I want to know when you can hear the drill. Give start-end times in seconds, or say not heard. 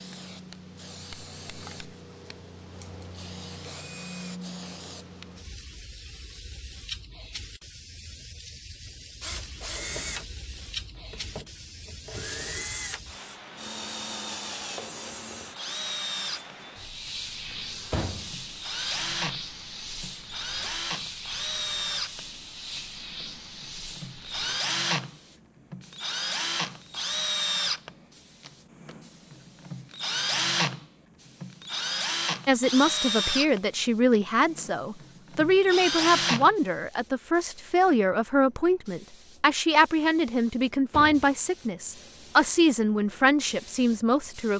2.8-4.4, 9.2-36.5.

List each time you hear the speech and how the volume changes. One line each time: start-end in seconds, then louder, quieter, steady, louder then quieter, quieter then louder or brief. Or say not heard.
32.5-44.5 steady.